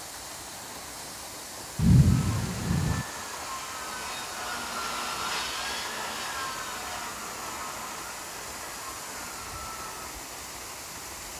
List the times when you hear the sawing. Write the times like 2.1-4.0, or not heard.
2.1-10.2.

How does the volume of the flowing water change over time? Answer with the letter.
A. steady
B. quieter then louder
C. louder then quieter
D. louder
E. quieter
A.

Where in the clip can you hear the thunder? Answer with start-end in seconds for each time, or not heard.
1.8-3.0.